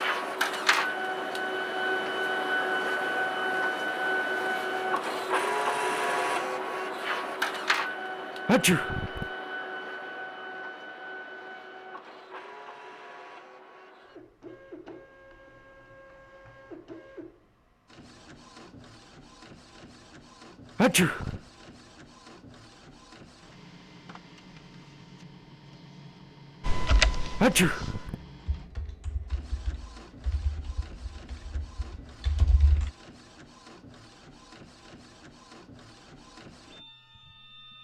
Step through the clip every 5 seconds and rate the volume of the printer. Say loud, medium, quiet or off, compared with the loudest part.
loud, loud, quiet, quiet, quiet, quiet, quiet, quiet.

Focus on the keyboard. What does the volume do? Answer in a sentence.
The loudness of the keyboard goes down, then up.